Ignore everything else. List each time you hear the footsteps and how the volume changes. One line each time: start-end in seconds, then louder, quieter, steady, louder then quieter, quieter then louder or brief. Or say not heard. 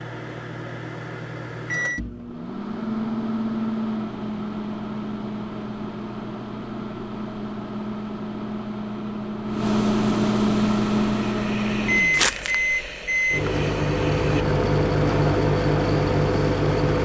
not heard.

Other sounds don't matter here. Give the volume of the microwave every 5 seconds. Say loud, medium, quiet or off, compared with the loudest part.
medium, medium, loud, loud.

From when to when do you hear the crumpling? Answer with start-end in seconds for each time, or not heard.
12.1-12.6.